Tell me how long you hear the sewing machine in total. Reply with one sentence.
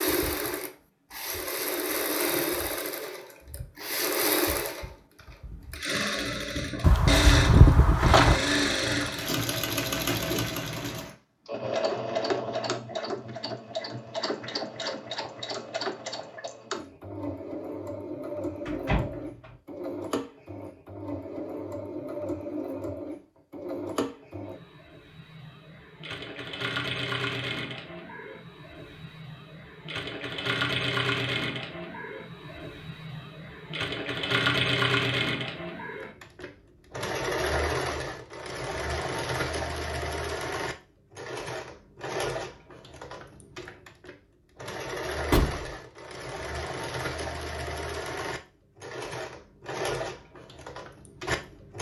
You can hear the sewing machine for 52 seconds altogether.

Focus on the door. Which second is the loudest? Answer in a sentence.
The loudest moment of the door is at 8 seconds.